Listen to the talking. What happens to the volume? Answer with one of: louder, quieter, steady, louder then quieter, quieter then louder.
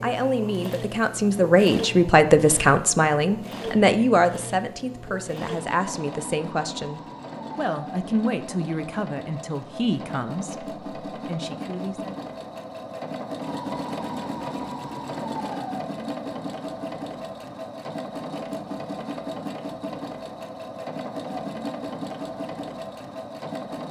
quieter.